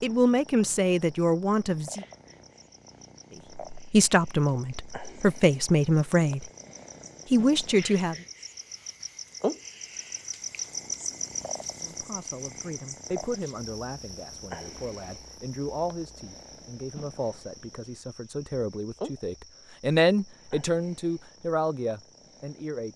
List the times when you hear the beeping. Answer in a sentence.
The beeping can't be heard in this clip.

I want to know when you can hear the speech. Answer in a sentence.
The speech can be heard from 0.0 to 2.0 s, from 3.7 to 6.5 s, from 7.3 to 8.2 s and from 11.8 to 22.9 s.